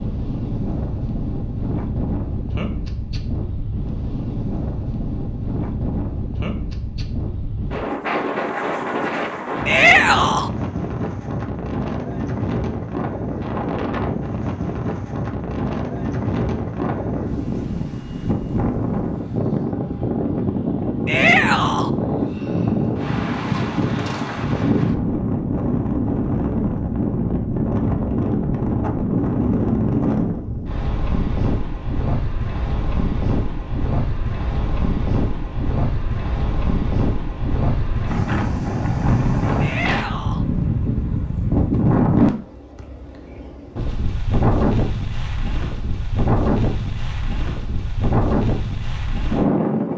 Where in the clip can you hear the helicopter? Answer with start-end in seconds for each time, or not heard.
not heard.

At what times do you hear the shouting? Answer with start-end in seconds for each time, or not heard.
9.7-10.5, 21.1-21.9, 39.6-40.5.